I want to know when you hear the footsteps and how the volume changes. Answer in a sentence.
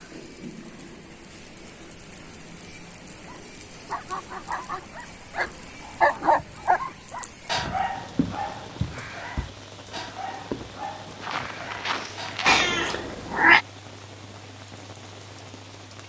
The footsteps can be heard from 7.5 to 12.7 s, at a steady volume.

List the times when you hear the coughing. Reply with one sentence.
The coughing can't be heard in this clip.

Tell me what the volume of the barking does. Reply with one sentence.
The volume of the barking goes up, then down.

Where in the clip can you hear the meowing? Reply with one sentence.
The meowing can be heard from 12.4 to 13.7 s.